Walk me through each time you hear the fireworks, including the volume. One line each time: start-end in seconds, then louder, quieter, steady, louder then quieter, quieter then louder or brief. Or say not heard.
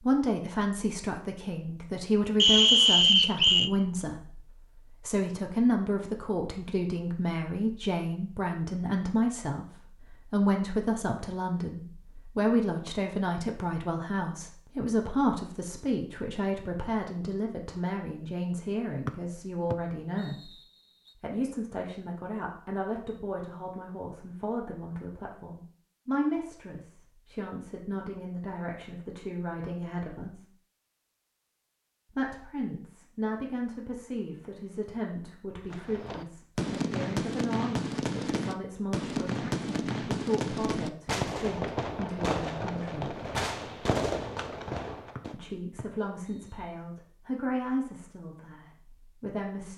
35.7-45.4 steady.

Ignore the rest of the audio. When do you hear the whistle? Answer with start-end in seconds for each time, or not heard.
2.4-3.7, 19.7-21.1, 45.1-46.8.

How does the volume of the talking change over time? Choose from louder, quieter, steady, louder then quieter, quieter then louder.
quieter.